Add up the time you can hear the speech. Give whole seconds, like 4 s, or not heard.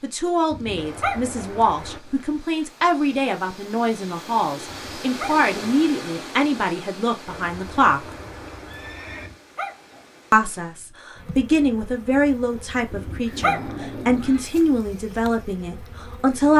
14 s.